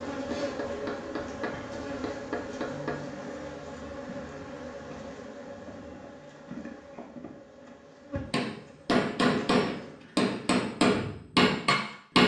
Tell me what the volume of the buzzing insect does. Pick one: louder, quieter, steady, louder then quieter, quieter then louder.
quieter.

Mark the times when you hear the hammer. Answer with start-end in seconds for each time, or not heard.
0.0-3.0, 8.3-12.2.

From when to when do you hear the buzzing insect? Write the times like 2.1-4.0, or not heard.
0.0-12.2.